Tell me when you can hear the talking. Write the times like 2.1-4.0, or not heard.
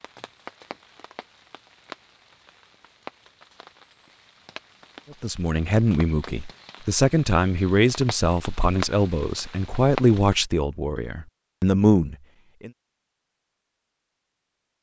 5.1-12.7.